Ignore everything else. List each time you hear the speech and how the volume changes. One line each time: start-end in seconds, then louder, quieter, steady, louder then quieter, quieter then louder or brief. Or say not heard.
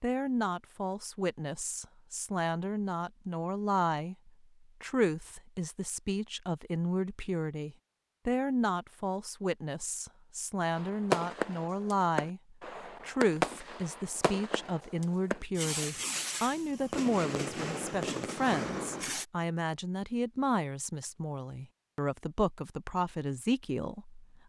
0.0-24.4 steady.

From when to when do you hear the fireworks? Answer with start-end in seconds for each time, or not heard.
10.8-19.2.